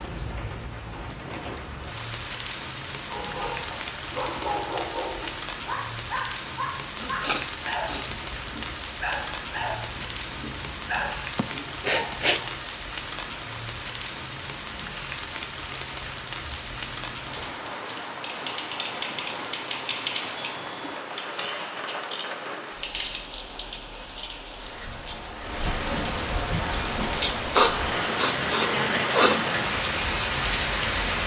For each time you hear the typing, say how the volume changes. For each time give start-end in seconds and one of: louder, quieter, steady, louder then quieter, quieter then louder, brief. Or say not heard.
16.4-23.2 louder then quieter.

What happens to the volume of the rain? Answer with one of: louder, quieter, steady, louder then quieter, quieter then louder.
louder.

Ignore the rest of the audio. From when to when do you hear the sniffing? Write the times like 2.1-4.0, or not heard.
7.0-8.1, 11.3-12.4, 27.5-29.4.